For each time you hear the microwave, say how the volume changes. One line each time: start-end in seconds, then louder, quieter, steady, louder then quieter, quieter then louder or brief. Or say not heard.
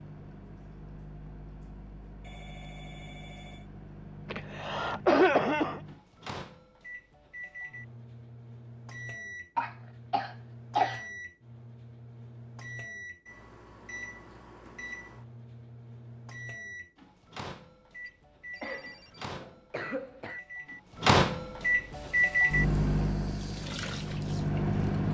0.0-25.0 louder.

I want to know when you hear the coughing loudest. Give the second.
5 s.